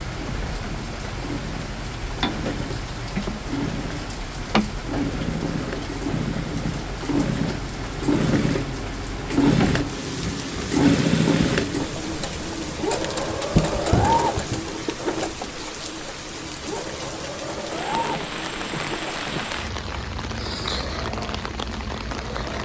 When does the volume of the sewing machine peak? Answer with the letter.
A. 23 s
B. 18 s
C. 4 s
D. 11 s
D.